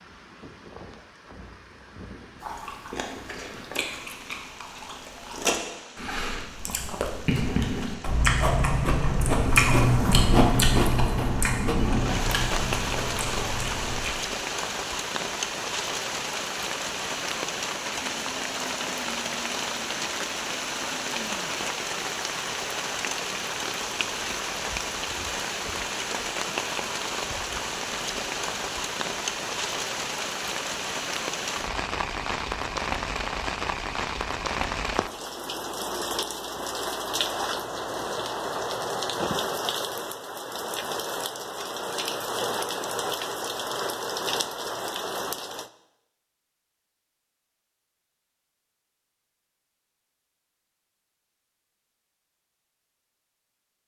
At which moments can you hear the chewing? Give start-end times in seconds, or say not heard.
2.4-14.1.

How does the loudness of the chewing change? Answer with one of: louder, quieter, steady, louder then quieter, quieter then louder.
louder then quieter.